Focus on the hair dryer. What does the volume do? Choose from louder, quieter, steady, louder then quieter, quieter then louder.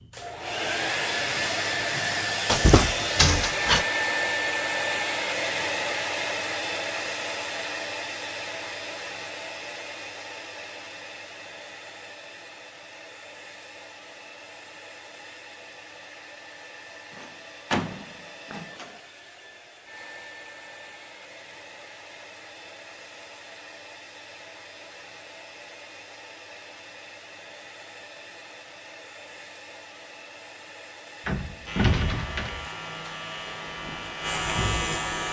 quieter.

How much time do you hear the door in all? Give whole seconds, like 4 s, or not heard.
5 s.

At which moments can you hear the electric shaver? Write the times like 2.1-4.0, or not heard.
31.6-35.2.